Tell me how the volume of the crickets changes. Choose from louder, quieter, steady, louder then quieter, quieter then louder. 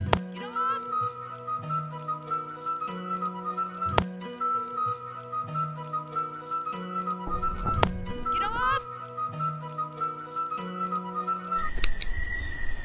steady.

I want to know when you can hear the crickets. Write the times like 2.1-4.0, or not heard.
0.0-12.7.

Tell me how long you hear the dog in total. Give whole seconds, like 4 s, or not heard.
not heard.